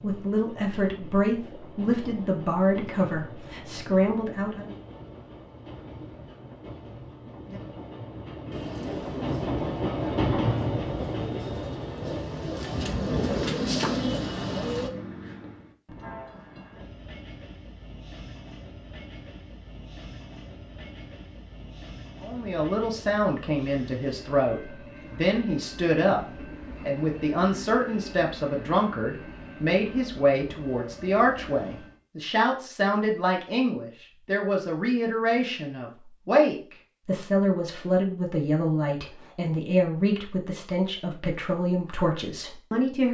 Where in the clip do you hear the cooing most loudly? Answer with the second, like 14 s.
14 s.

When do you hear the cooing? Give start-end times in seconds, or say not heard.
8.5-14.9.